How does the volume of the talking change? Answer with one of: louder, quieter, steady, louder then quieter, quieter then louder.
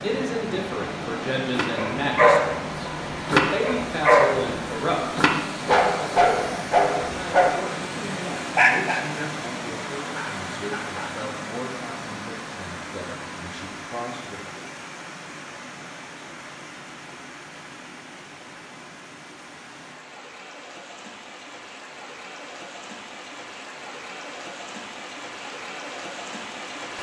quieter.